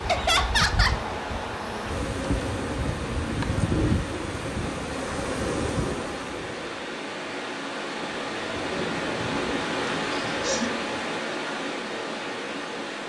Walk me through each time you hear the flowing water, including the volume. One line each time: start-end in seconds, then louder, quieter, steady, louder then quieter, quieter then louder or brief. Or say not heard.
0.0-13.0 louder.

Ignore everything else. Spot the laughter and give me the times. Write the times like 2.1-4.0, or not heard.
0.1-1.0, 9.8-10.8.